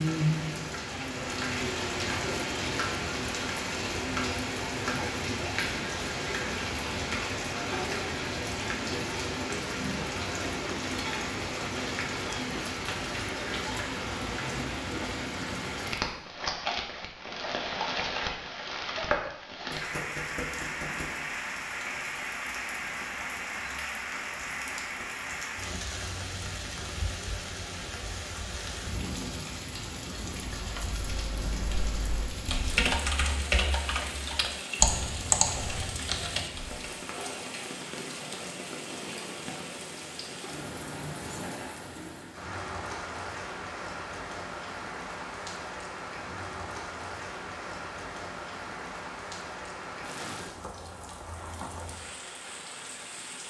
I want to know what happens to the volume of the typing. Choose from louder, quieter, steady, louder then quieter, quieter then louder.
louder.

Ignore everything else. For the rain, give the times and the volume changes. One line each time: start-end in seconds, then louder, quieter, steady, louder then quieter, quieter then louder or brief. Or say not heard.
0.0-53.4 quieter.